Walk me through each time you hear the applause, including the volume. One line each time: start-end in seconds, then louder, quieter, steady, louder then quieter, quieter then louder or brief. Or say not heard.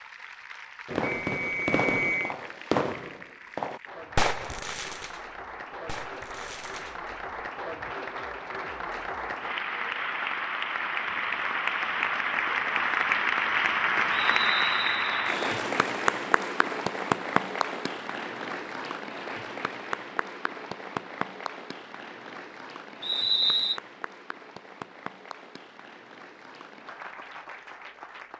0.0-28.3 louder then quieter.